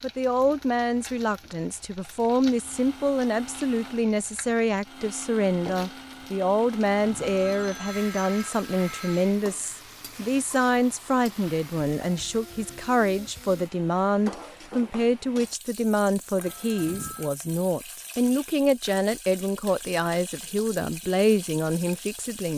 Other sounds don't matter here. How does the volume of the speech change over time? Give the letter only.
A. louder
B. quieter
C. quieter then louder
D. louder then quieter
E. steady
E.